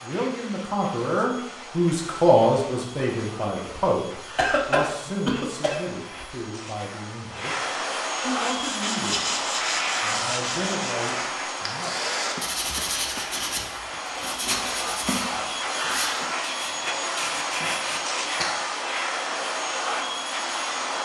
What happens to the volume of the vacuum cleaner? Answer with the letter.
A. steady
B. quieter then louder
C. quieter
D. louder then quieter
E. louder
E.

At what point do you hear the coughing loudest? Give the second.
5 s.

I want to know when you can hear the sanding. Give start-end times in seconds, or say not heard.
8.2-18.4.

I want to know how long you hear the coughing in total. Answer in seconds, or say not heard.
3 s.